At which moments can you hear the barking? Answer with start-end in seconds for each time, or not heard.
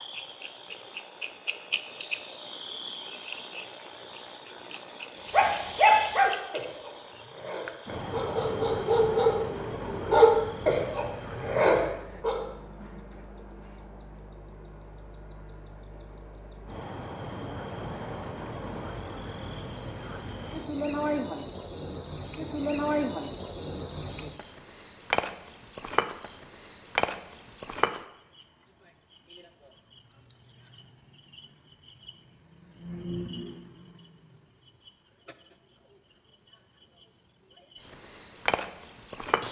5.3-12.4.